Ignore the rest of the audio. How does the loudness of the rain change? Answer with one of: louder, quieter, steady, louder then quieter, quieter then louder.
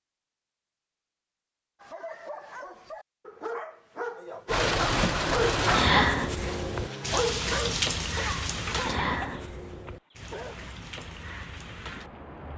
quieter.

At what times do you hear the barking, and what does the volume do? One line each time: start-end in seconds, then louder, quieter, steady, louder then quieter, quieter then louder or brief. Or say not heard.
1.8-10.6 louder then quieter.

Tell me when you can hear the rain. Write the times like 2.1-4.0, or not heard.
4.5-12.5.